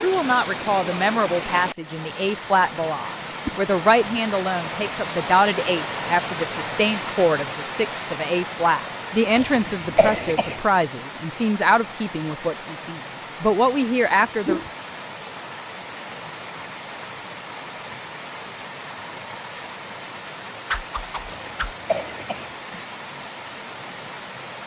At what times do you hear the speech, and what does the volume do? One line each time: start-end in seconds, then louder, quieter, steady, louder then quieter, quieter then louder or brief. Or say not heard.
0.0-14.6 steady.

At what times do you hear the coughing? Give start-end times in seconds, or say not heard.
9.3-10.6, 21.2-22.5.